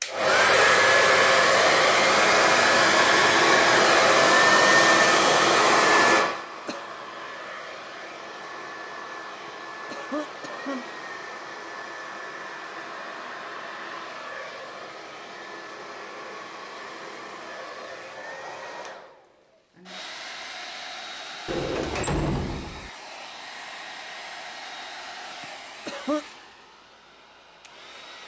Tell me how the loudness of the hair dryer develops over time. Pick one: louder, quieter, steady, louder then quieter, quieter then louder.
quieter.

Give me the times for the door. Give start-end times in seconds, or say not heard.
21.4-22.9.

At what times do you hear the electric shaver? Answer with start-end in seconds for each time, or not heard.
not heard.